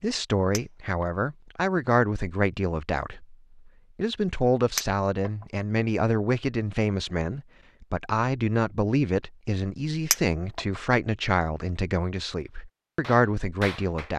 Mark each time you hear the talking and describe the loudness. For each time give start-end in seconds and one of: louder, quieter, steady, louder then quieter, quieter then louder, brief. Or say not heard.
0.0-14.1 steady.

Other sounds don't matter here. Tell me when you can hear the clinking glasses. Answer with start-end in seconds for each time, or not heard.
0.5-1.1, 4.8-5.3, 10.1-10.6.